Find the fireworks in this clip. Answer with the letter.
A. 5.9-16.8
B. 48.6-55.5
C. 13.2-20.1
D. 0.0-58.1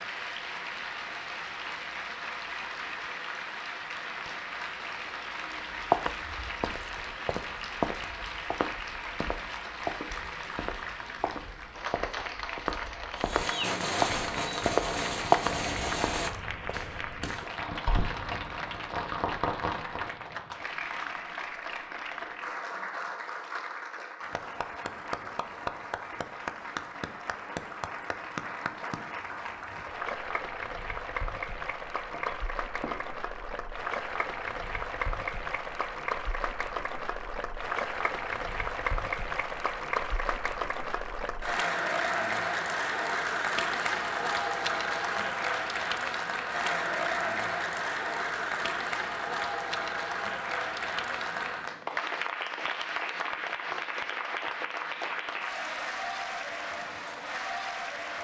C.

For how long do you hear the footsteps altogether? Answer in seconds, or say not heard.
11 s.